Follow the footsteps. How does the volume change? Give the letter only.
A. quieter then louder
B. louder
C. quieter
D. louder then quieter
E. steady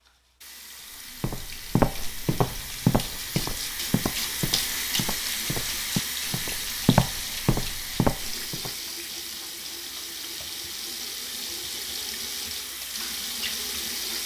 A.